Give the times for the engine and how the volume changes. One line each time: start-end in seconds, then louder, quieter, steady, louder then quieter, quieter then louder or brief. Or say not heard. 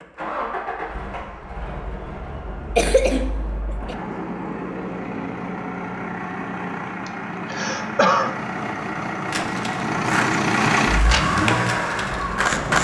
0.0-12.6 louder.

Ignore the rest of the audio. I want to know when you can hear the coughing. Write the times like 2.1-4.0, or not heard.
2.8-4.0, 7.0-8.3.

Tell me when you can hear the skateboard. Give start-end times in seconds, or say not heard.
9.2-12.7.